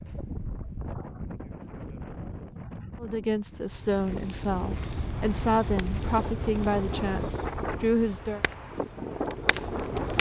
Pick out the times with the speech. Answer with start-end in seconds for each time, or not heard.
3.0-8.4.